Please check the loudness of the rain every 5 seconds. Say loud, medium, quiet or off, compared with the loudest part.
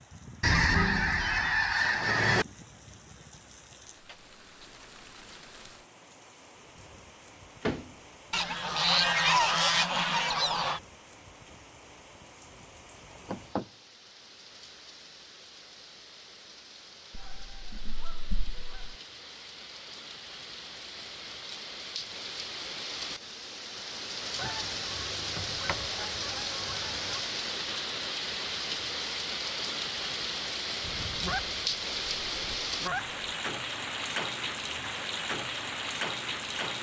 quiet, quiet, quiet, quiet, medium, loud, loud, loud.